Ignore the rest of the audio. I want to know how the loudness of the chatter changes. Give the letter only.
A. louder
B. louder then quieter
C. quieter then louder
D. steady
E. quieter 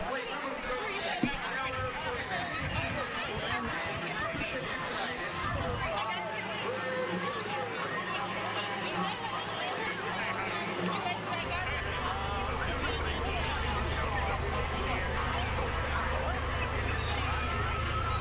D.